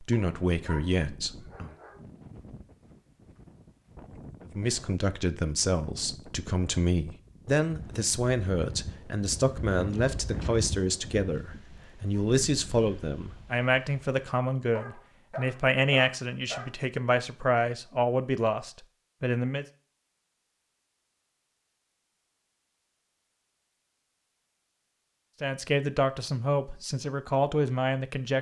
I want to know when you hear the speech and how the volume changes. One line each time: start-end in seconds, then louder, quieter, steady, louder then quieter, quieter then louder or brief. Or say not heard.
0.0-1.8 brief
4.5-19.6 steady
25.4-28.3 brief.